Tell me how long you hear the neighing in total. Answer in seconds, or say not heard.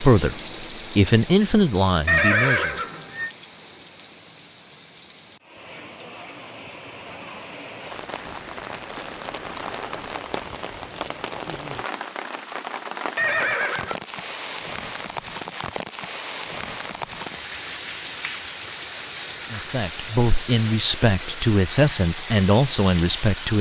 2 s.